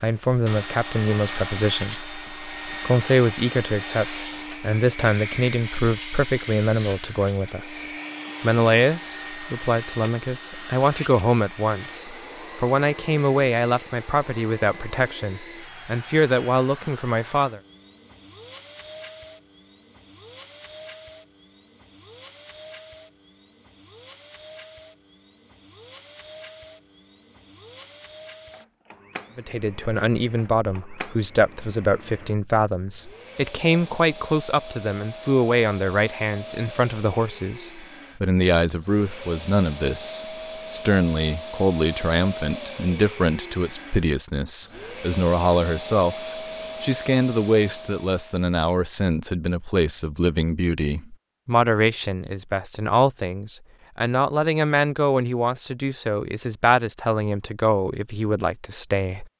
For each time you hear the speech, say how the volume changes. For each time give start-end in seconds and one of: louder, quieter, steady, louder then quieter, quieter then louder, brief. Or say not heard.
0.0-17.6 steady
29.4-59.2 steady.